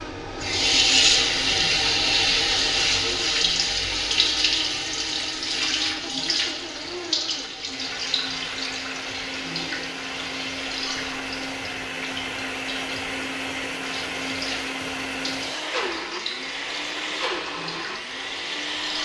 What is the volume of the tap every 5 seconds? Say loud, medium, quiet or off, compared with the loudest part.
loud, medium, quiet, quiet.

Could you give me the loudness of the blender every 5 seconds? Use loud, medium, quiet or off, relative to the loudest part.
medium, medium, loud, loud.